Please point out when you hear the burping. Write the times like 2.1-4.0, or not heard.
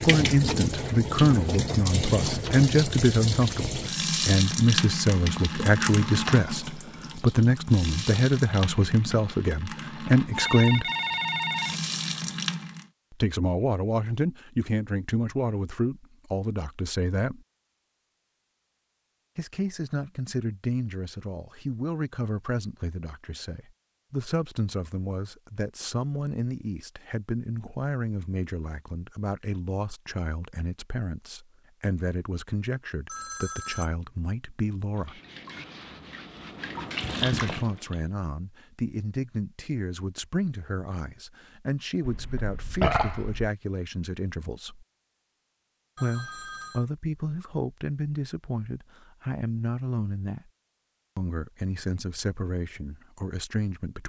42.0-43.5.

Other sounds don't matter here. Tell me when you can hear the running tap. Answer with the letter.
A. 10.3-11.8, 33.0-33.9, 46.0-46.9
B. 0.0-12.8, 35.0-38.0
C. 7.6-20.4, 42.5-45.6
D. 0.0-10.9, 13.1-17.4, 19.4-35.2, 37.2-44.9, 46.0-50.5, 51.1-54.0
B.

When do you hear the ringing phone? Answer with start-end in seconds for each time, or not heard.
10.3-11.8, 33.0-33.9, 46.0-46.9.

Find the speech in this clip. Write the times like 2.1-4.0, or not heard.
0.0-10.9, 13.1-17.4, 19.4-35.2, 37.2-44.9, 46.0-50.5, 51.1-54.0.